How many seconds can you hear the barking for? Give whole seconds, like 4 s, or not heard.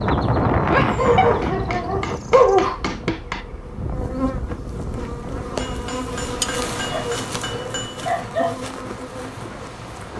4 s.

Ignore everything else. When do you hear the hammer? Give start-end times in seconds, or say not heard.
1.4-3.5, 5.5-8.1.